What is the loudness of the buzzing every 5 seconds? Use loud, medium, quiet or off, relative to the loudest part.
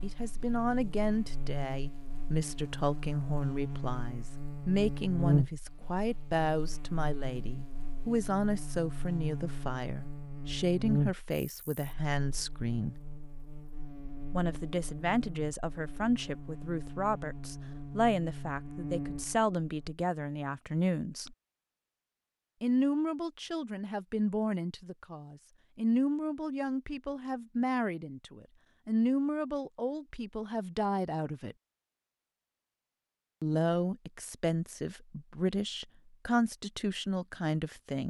medium, loud, loud, medium, off, off, off, off.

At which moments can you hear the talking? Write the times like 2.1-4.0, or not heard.
0.0-12.9, 14.3-21.4, 22.6-31.6, 33.4-38.0.